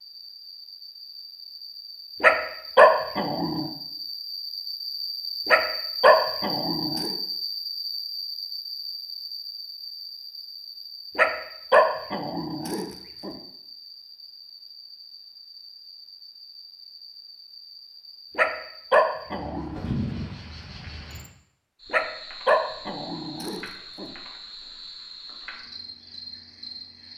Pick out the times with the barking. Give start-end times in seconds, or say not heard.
2.2-3.7, 5.5-7.2, 11.2-13.3, 18.4-19.8, 21.9-24.1.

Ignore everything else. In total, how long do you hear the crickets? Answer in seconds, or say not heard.
27 s.